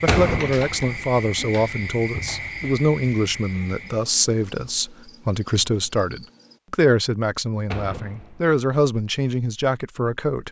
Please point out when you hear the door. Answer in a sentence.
You can hear the door from 0.1 to 1.1 s and from 7.7 to 8.6 s.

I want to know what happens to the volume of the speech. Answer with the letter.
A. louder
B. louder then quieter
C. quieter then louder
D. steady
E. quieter
D.